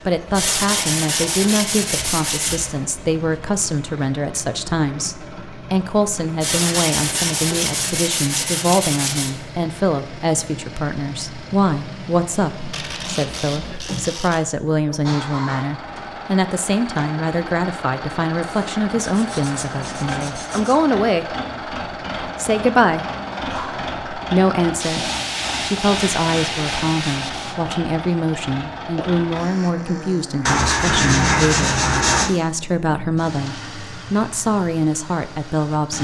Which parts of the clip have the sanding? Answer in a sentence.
You can hear the sanding from 0.3 to 2.7 s, from 6.4 to 9.3 s, from 12.7 to 14.4 s, from 18.4 to 20.8 s, from 24.8 to 27.8 s and from 30.4 to 32.3 s.